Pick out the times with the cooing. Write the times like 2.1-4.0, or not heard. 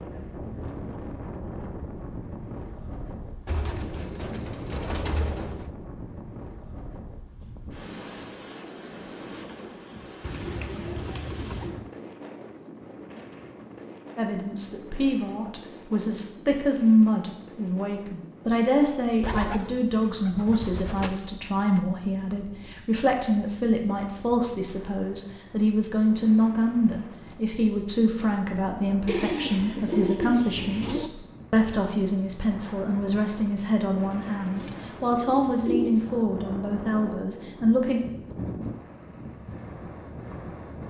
3.5-5.7, 10.2-11.9, 19.2-21.8, 29.1-31.1, 34.5-36.0.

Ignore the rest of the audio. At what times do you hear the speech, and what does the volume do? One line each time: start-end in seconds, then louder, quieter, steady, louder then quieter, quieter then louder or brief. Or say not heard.
14.2-38.0 steady.